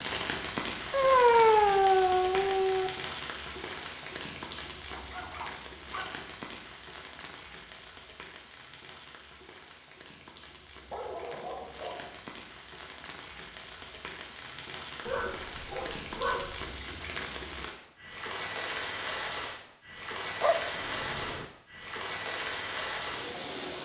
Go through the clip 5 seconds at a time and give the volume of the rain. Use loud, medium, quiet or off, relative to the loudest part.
loud, medium, medium, loud, loud.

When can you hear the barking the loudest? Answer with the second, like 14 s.
1 s.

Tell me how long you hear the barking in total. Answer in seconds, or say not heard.
7 s.